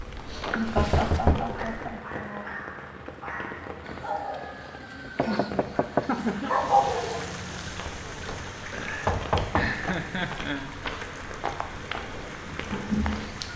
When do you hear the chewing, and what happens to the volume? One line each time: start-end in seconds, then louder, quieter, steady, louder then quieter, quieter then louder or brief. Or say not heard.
0.0-2.0 brief
7.6-13.5 louder.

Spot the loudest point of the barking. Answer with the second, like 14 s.
7 s.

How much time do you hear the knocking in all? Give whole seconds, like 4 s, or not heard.
3 s.